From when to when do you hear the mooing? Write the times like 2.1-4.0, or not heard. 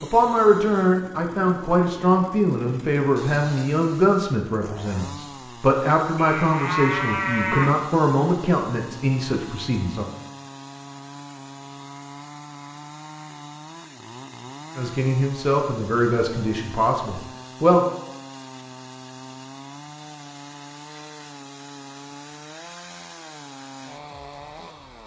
6.2-7.7.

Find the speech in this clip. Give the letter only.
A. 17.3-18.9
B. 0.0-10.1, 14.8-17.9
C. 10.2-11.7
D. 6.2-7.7
B.